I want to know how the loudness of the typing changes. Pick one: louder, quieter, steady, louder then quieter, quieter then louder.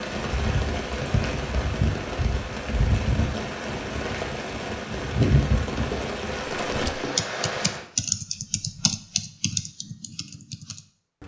quieter.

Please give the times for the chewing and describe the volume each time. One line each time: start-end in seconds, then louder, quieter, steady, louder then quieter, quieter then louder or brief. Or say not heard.
not heard.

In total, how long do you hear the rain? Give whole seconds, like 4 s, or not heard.
8 s.